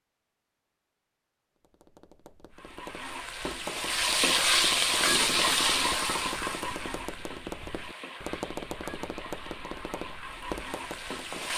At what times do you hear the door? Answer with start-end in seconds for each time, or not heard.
not heard.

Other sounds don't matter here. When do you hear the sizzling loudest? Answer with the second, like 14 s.
5 s.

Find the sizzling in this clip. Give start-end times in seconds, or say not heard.
2.5-11.5.